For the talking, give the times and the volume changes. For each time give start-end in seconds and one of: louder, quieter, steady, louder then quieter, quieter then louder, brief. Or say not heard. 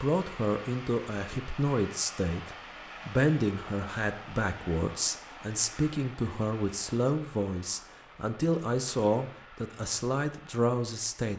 0.0-11.3 steady.